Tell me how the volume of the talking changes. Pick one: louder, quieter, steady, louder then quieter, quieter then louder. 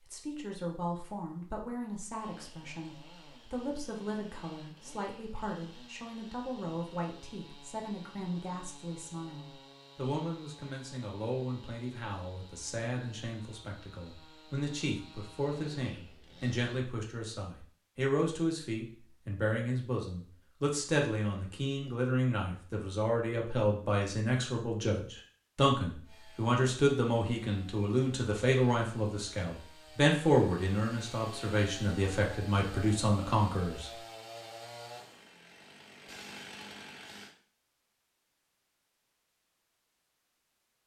louder.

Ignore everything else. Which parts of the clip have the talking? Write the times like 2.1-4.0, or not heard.
0.1-33.9.